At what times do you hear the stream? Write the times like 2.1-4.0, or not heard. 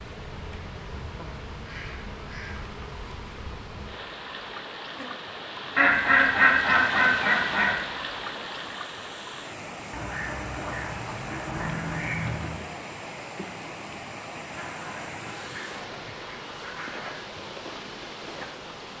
0.0-18.9.